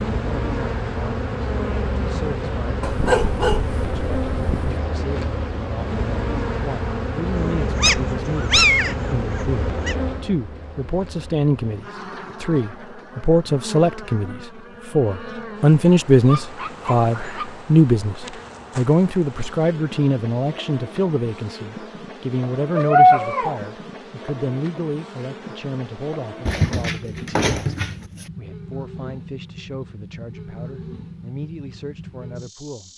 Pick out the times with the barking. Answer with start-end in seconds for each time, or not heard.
2.8-4.8, 7.4-9.9, 16.2-17.6, 22.8-23.6, 26.4-28.2.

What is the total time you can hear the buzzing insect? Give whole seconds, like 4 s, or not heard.
33 s.